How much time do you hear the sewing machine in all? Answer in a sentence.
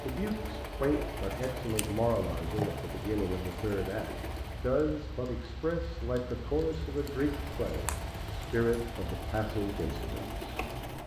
You can hear the sewing machine for 9 seconds altogether.